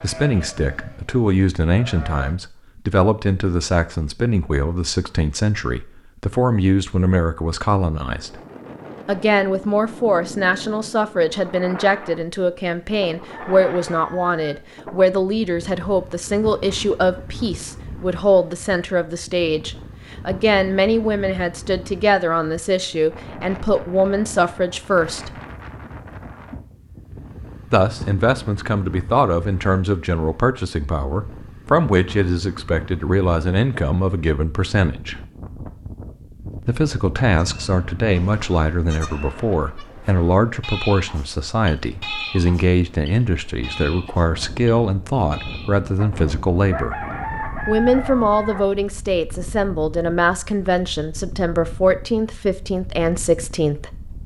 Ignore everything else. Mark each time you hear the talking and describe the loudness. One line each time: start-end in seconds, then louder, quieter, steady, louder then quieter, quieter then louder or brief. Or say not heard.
0.0-8.3 steady
9.1-25.3 steady
27.7-35.2 steady
36.6-47.0 steady
47.6-54.0 steady.